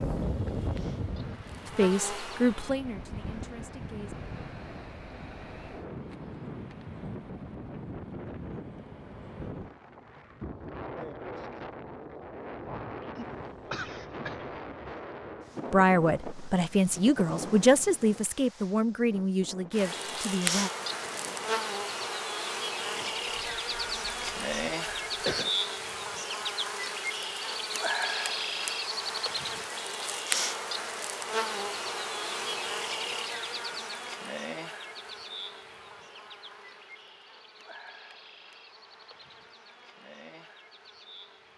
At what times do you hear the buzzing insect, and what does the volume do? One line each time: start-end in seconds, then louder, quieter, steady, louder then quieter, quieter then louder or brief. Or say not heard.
0.0-2.8 brief
19.7-41.5 quieter.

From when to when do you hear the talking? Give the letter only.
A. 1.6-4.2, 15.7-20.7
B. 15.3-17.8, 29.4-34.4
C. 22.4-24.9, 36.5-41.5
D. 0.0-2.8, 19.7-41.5
A.